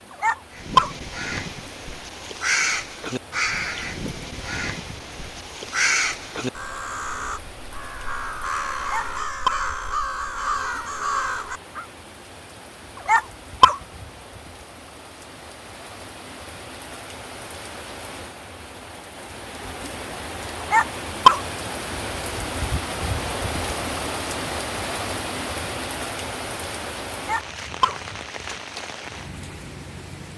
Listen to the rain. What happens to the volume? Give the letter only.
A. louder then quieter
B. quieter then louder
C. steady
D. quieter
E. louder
E.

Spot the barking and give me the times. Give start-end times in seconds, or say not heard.
0.2-0.9, 8.9-9.6, 13.1-13.8, 20.7-21.4, 27.2-27.9.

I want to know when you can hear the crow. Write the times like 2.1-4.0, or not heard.
0.5-11.8.